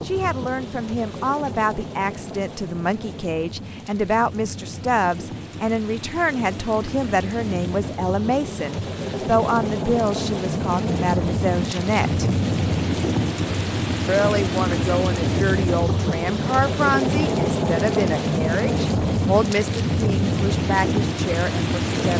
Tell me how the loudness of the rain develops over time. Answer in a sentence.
The volume of the rain goes up.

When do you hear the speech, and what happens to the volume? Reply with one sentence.
The speech can be heard from 0.0 to 12.3 s, at a steady volume; and from 14.1 to 22.1 s, at a steady volume.